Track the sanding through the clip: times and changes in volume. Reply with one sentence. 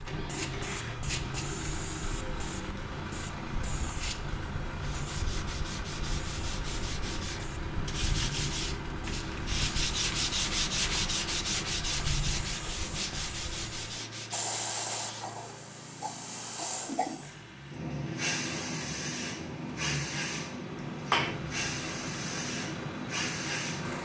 The sanding can be heard from 4.8 to 15.4 s, getting louder then quieter.